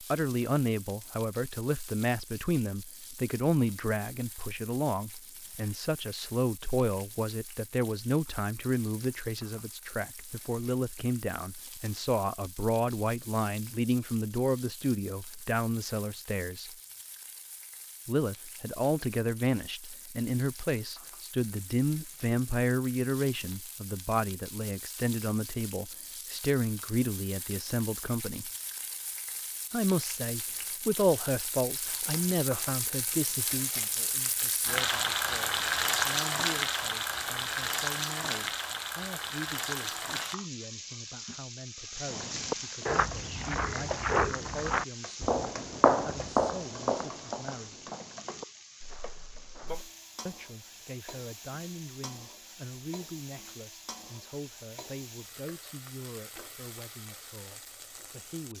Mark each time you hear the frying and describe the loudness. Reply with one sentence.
You can hear the frying from 0.0 to 58.5 s, getting louder then quieter.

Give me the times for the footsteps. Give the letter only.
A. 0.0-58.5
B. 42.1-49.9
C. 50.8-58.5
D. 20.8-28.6
B.